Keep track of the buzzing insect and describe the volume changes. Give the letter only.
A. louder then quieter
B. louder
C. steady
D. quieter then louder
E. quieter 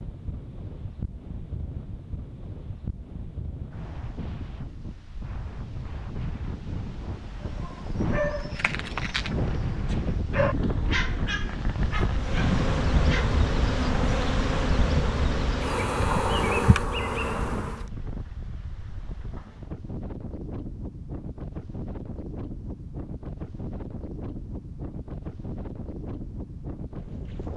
C.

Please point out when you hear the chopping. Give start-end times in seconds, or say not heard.
not heard.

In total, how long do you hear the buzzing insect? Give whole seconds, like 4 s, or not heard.
6 s.